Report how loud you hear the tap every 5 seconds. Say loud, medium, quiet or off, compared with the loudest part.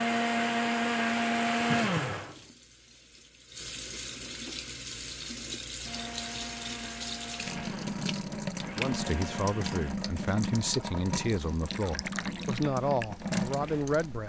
medium, loud, loud.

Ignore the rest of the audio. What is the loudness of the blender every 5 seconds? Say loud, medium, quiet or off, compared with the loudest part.
loud, quiet, off.